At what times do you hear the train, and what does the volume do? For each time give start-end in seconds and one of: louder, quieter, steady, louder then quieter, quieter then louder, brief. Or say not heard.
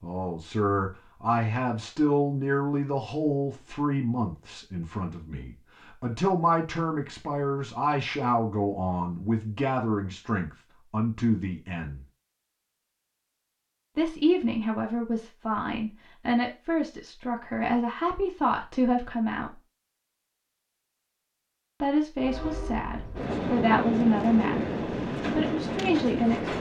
22.2-26.5 louder.